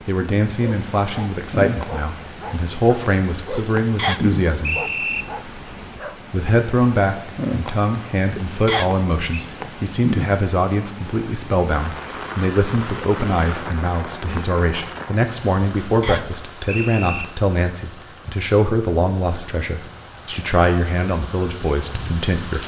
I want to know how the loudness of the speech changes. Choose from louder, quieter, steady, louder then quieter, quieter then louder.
steady.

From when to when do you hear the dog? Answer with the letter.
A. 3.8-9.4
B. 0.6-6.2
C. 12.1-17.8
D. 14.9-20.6
B.